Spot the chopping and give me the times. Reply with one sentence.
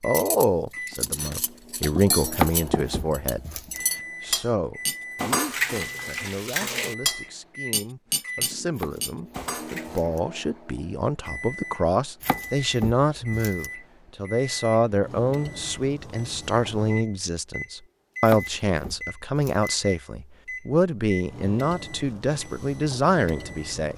You can hear the chopping from 2.3 to 3.8 s, from 8.8 to 10.2 s, from 12.2 to 13.7 s and from 18.2 to 19.7 s.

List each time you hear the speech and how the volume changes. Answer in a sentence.
You can hear the speech from 0.0 to 23.9 s, getting quieter then louder.